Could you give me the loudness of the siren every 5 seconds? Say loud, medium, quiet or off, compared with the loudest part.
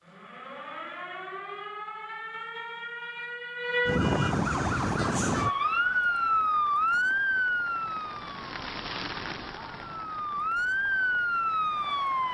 medium, loud, loud.